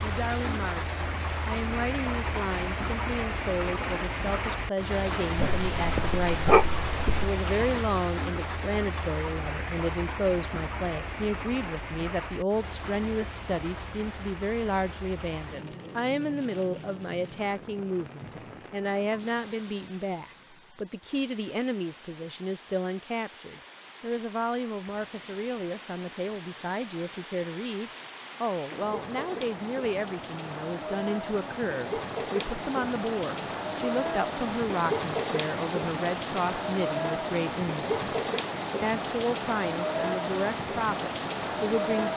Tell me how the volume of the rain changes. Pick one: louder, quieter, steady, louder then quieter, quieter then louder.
quieter then louder.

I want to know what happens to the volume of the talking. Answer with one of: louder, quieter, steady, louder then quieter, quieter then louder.
steady.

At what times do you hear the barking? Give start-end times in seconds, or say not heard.
5.3-7.3.